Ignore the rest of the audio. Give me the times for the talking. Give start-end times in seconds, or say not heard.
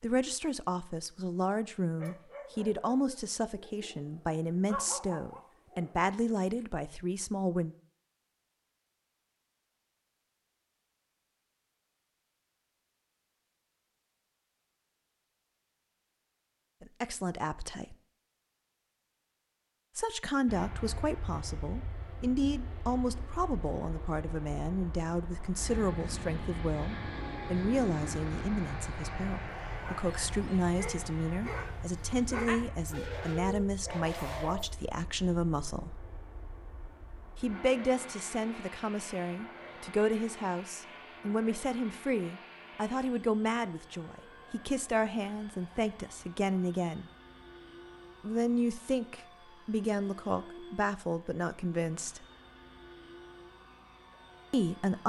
0.0-7.8, 16.8-17.9, 19.9-36.0, 37.4-47.0, 48.2-52.2, 54.5-55.0.